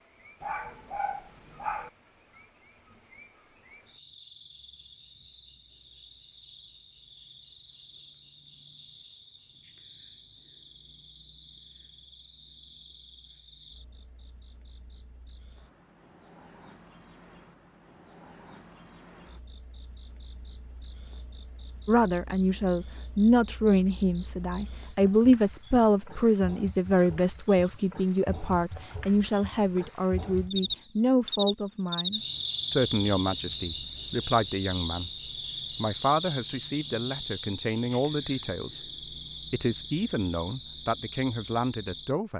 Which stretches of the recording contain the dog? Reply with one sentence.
The dog can be heard from 0.4 to 1.9 s.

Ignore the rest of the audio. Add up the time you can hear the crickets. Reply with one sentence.
You can hear the crickets for 42 seconds altogether.